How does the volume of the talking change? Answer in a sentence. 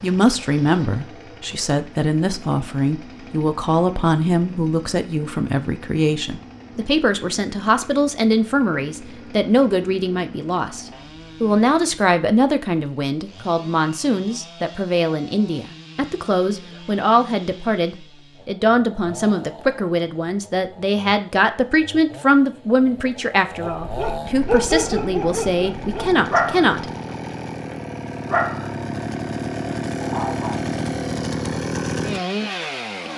The loudness of the talking stays about the same.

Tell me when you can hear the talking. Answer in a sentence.
The talking can be heard from 0.0 to 26.9 s.